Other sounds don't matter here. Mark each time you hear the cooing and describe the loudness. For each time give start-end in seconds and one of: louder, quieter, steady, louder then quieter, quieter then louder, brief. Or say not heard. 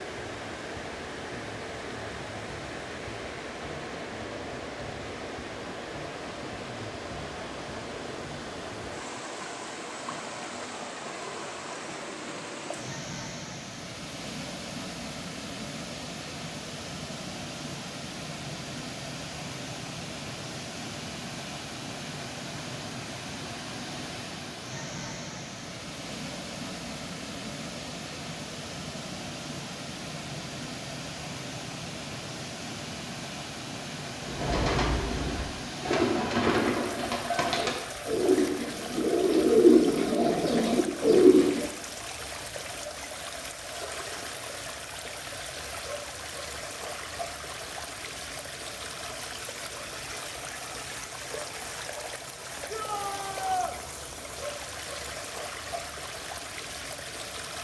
34.2-41.7 louder.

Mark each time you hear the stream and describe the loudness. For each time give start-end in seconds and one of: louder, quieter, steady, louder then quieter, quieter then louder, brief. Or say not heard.
0.0-57.6 steady.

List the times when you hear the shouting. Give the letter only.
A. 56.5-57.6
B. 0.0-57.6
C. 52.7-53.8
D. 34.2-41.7
C.